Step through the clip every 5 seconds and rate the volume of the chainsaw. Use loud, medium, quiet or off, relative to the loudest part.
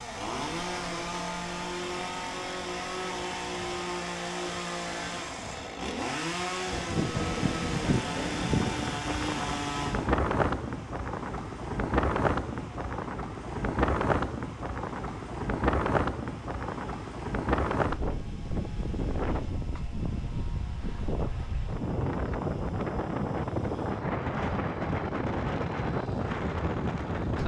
loud, loud, quiet, quiet, quiet, quiet.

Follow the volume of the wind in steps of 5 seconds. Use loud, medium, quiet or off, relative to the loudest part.
quiet, loud, loud, loud, loud, loud.